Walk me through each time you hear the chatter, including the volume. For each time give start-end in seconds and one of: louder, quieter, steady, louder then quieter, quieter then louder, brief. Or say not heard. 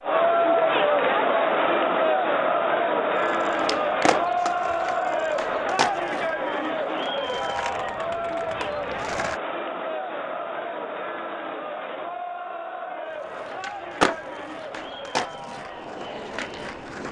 0.0-17.0 quieter.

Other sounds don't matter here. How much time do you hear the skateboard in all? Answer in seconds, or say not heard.
10 s.